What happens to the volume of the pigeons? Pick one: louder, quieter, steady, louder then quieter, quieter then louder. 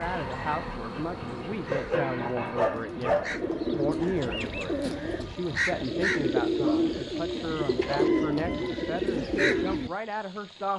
louder.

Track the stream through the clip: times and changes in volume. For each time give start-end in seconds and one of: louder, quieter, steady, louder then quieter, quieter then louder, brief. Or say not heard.
not heard.